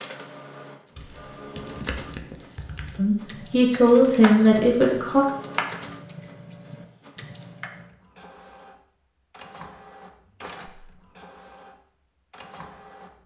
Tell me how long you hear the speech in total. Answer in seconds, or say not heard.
2 s.